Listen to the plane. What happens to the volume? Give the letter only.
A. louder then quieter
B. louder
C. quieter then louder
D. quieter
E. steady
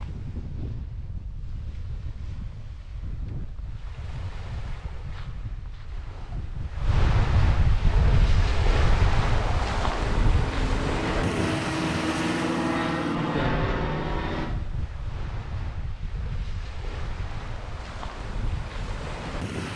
B.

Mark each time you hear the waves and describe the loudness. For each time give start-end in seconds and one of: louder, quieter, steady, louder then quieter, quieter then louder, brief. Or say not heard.
0.0-19.7 louder then quieter.